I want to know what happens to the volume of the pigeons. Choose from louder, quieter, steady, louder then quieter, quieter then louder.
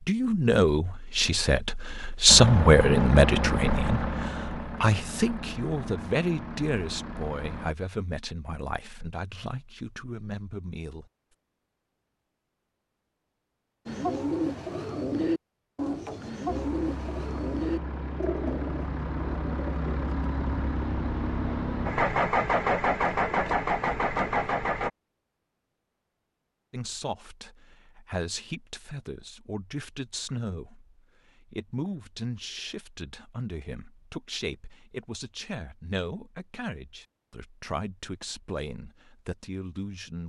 quieter.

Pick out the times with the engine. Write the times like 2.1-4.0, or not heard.
2.2-7.8, 16.4-24.9.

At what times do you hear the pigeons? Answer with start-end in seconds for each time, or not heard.
13.8-20.2.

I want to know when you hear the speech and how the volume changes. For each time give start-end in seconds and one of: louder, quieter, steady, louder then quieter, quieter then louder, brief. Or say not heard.
0.0-11.1 quieter
26.7-40.2 steady.